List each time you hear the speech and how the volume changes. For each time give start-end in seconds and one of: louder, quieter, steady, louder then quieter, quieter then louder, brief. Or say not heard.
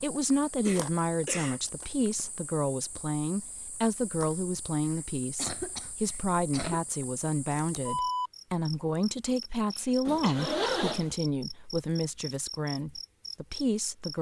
0.0-14.1 steady.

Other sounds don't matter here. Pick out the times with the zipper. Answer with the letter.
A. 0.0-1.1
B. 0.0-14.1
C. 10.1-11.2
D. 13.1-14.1
C.